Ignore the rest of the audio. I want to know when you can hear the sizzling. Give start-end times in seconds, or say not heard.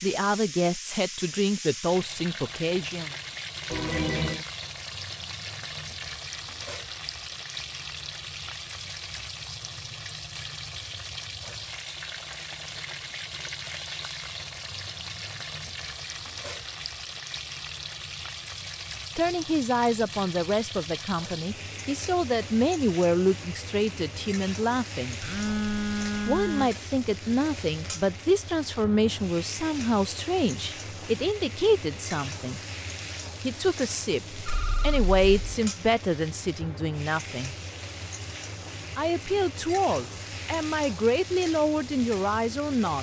0.0-42.9.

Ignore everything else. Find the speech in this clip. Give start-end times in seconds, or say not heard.
0.0-3.1, 19.1-25.2, 26.2-32.6, 33.4-37.5, 39.0-42.9.